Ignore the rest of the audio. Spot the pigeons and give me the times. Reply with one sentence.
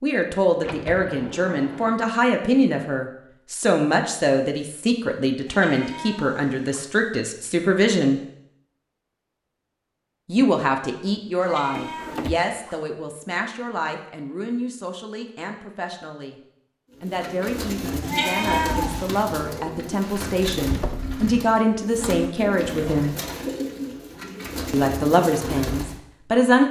You can hear the pigeons from 16.9 to 26.0 s.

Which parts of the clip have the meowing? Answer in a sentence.
You can hear the meowing from 5.5 to 6.9 s, from 11.4 to 12.8 s and from 18.0 to 19.2 s.